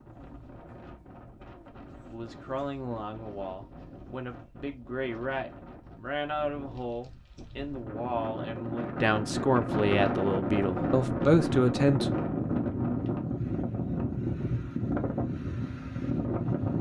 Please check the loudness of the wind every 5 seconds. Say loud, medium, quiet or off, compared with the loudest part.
quiet, medium, loud, loud.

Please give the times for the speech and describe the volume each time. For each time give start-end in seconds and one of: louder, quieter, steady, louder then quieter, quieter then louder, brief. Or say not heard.
2.1-12.1 louder.